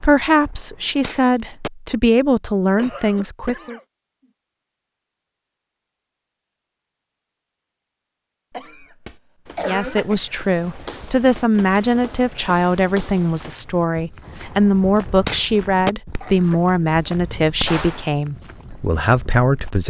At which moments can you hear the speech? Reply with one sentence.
You can hear the speech from 0.0 to 3.8 s and from 9.7 to 19.8 s.